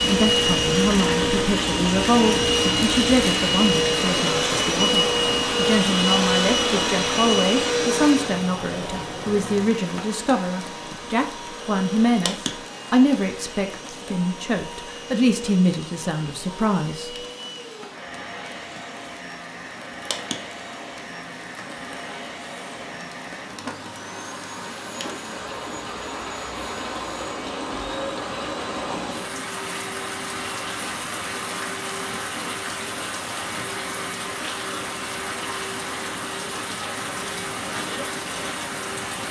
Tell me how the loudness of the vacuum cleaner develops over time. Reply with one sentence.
The volume of the vacuum cleaner goes down.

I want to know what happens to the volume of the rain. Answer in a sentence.
The volume of the rain goes down, then up.